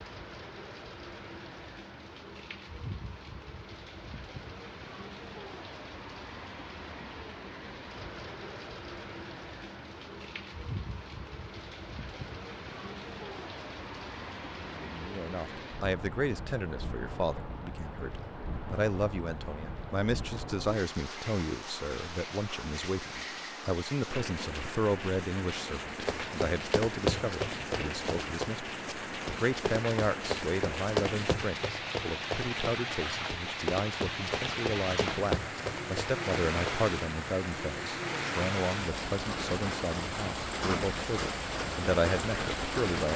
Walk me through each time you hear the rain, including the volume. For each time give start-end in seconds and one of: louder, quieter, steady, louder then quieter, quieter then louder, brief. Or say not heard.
0.0-43.1 louder.